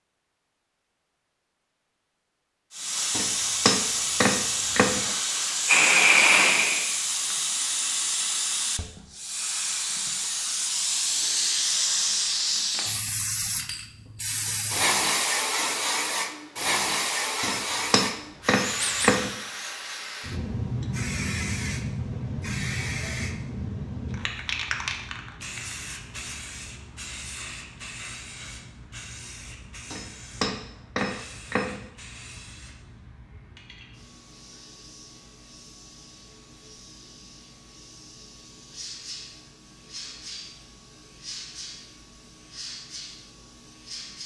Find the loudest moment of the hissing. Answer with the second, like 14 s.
6 s.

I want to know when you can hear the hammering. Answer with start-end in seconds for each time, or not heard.
3.1-5.0, 17.4-19.3, 29.9-31.8.